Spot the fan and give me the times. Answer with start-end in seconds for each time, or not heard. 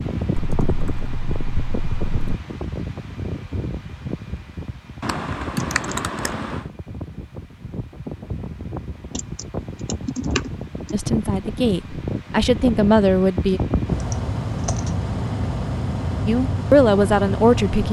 0.0-17.8.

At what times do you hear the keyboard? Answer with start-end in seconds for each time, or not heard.
0.3-2.4, 5.0-6.6, 9.2-10.9, 14.0-14.9.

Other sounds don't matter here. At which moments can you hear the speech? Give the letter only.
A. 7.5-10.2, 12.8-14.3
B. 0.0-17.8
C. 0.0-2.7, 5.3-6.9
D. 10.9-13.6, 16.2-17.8
D.